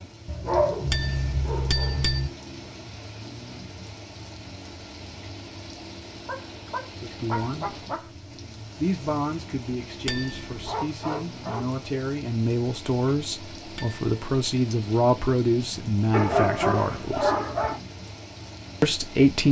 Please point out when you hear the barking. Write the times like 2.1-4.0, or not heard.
0.2-2.3, 6.2-8.1, 10.7-11.8, 16.1-17.8.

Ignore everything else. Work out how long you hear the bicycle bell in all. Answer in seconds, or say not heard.
3 s.